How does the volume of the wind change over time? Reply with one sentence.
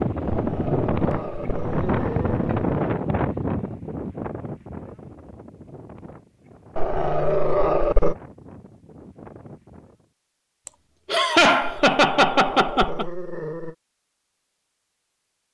The loudness of the wind goes down.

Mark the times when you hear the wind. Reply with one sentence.
You can hear the wind from 0.0 to 10.1 s.